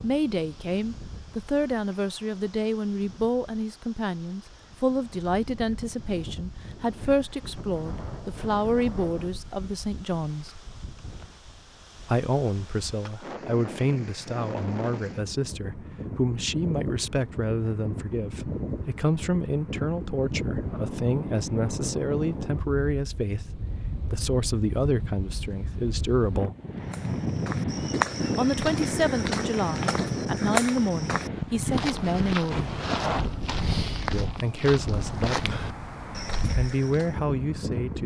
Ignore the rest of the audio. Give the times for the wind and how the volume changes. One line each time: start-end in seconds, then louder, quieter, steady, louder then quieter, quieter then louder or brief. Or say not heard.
0.0-38.0 louder.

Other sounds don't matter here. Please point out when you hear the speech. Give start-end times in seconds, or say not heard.
0.0-10.5, 12.1-26.6, 28.4-32.8, 34.1-35.5, 36.4-38.0.